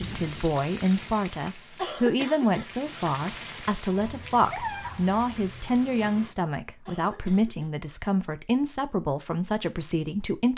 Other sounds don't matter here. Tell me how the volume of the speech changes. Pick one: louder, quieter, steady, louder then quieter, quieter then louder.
steady.